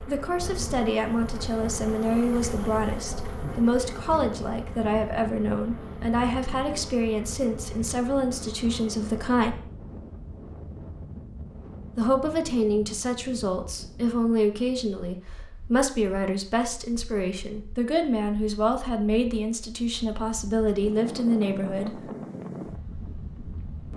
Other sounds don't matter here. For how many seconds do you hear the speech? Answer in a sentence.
You can hear the speech for 20 seconds altogether.